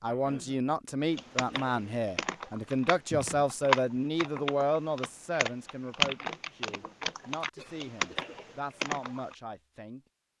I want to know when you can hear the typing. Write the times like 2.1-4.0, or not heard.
1.1-9.3.